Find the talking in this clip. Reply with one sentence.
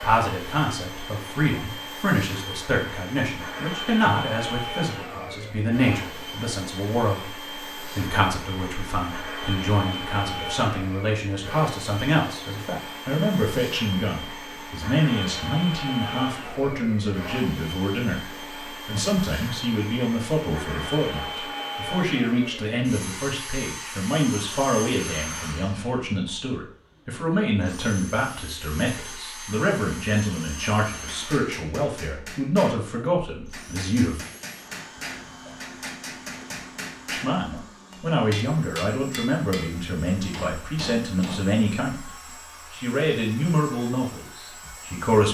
You can hear the talking from 0.0 to 34.2 s, from 37.1 to 42.1 s and from 42.7 to 45.2 s.